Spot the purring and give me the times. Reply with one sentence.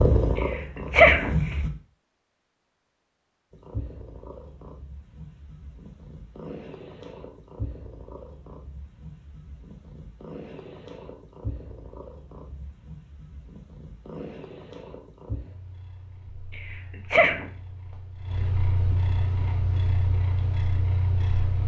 The purring can be heard from 0.0 to 1.7 s and from 3.5 to 21.6 s.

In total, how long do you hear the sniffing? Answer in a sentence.
The sniffing can be heard for 2 seconds in total.